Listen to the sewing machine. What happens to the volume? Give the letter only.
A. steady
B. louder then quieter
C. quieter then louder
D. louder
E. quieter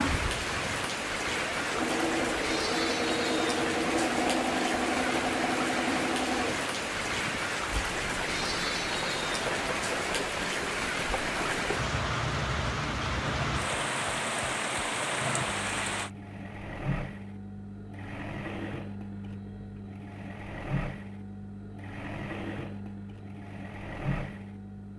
E.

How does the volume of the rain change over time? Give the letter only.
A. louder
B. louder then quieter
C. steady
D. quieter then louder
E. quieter
C.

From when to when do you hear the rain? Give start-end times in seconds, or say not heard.
0.0-16.1.